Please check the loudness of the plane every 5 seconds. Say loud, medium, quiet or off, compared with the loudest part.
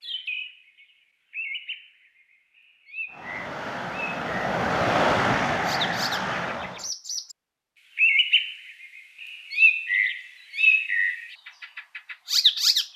loud, loud, off.